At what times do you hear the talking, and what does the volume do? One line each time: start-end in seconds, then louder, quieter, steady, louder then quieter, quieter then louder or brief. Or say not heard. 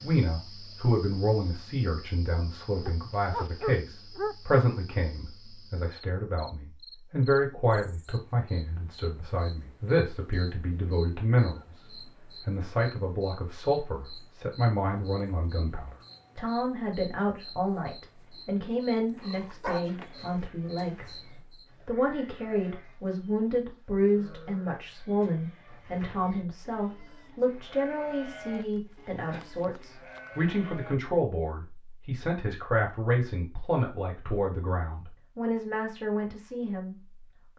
0.0-21.2 steady
21.9-37.0 steady.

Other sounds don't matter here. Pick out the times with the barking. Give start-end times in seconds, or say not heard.
2.9-4.8, 19.1-20.5, 28.4-30.3.